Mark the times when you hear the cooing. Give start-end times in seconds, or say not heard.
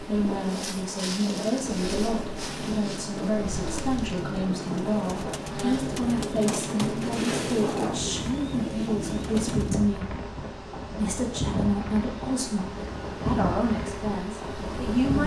2.3-9.8.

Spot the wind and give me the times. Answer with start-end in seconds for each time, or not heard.
0.0-15.2.